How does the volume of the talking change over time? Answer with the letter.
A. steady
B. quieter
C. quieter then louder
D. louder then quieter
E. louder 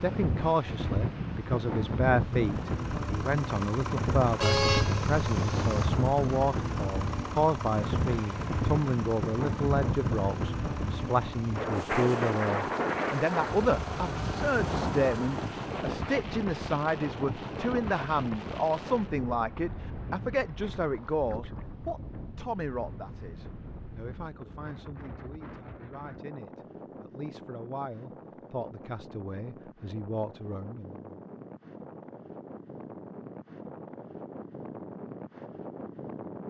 B.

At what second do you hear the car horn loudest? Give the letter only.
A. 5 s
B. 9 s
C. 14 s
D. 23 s
A.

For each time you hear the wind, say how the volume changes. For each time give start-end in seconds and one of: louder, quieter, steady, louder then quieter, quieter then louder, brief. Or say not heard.
0.0-36.4 quieter.